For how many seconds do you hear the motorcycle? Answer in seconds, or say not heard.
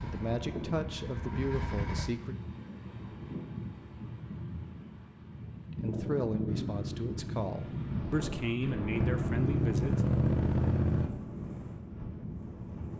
7 s.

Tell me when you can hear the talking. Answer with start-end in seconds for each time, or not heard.
0.0-2.4, 5.8-10.0.